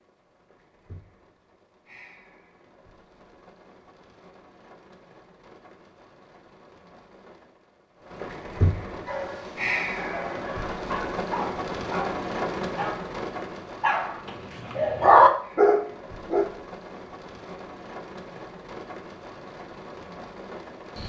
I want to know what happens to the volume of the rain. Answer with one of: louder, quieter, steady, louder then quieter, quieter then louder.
louder then quieter.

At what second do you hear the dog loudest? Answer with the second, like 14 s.
15 s.